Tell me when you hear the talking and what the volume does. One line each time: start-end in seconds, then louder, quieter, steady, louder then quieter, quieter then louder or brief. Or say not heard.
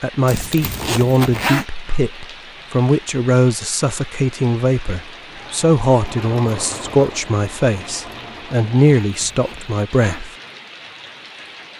0.0-10.3 steady.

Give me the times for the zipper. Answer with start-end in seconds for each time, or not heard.
0.2-1.6, 9.1-10.2.